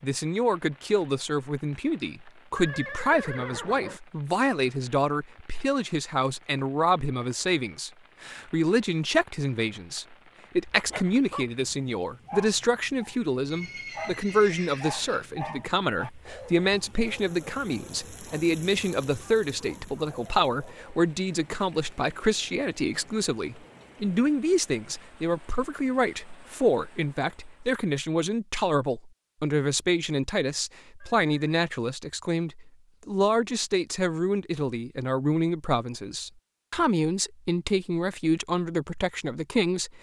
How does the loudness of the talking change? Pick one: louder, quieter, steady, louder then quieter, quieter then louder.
steady.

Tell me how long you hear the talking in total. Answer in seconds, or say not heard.
40 s.